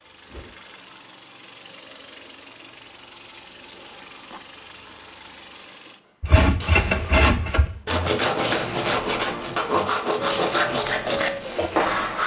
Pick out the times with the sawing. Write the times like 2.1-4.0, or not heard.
6.2-12.2.